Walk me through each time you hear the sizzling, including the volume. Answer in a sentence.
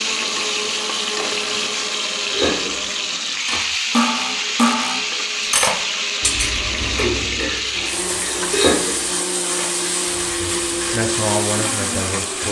You can hear the sizzling from 0.0 to 12.4 s, at a steady volume.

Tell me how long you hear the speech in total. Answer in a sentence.
You can hear the speech for 2 seconds altogether.